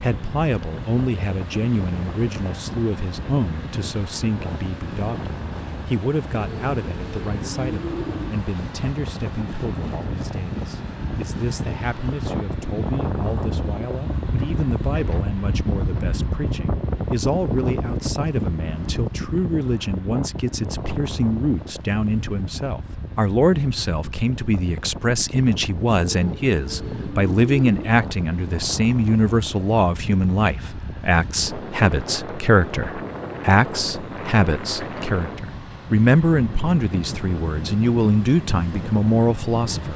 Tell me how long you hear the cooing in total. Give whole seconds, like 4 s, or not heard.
4 s.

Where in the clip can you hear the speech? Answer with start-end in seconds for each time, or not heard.
0.0-39.9.